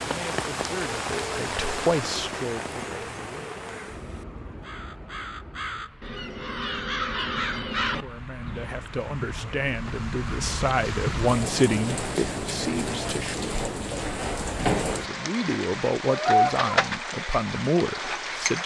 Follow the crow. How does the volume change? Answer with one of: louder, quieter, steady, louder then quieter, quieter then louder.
louder.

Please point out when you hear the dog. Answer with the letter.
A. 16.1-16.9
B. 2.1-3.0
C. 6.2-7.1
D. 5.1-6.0
A.